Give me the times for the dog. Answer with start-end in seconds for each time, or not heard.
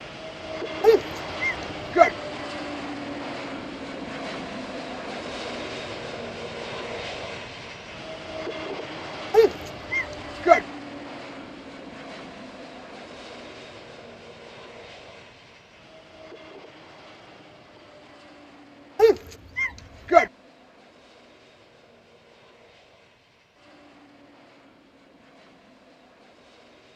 0.8-2.1, 9.3-10.6, 18.9-20.3.